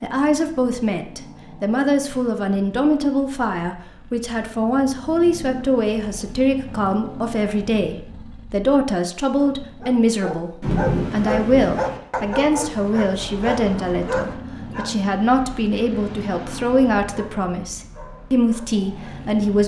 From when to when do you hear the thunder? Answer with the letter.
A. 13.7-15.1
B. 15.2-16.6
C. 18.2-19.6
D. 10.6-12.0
D.